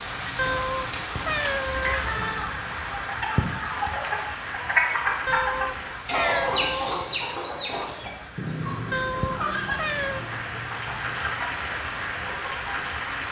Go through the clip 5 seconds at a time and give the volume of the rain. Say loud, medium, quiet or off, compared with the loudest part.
loud, medium, loud.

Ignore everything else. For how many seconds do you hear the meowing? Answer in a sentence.
You can hear the meowing for 5 seconds altogether.